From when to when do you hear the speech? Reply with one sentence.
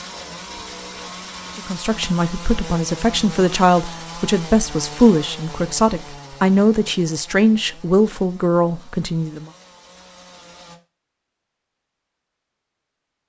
The speech can be heard from 1.6 to 9.5 s.